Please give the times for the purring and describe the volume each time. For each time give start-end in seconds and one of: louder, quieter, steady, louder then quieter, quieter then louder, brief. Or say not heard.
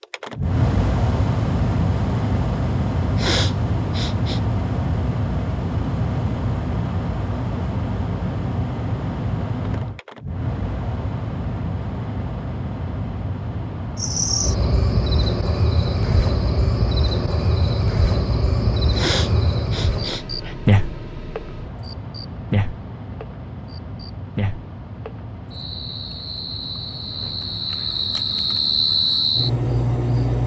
not heard.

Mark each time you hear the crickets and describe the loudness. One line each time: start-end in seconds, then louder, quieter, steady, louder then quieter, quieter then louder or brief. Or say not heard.
13.9-30.4 quieter then louder.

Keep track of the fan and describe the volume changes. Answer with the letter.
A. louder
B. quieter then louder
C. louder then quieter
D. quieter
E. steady
D.